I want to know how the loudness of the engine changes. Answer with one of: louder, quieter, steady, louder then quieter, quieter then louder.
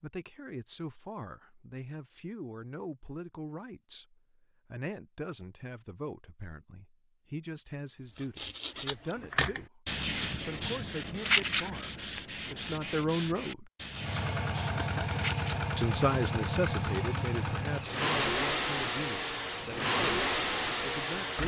steady.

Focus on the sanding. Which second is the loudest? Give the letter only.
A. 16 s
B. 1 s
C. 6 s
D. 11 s
D.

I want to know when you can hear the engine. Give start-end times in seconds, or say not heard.
13.9-21.4.